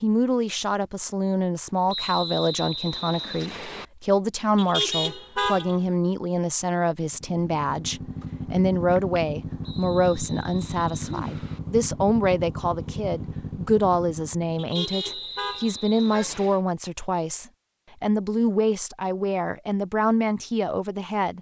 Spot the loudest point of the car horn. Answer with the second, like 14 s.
5 s.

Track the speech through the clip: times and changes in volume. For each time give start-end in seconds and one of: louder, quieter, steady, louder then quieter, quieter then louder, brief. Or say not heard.
0.0-21.3 steady.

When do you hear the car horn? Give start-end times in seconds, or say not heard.
4.5-5.9, 14.6-16.4.